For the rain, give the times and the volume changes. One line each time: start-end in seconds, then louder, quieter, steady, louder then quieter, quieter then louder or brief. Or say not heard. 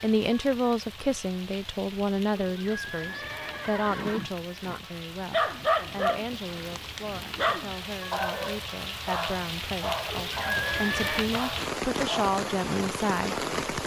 0.0-13.8 louder.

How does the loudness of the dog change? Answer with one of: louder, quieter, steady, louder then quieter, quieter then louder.
quieter.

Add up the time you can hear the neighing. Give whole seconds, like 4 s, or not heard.
4 s.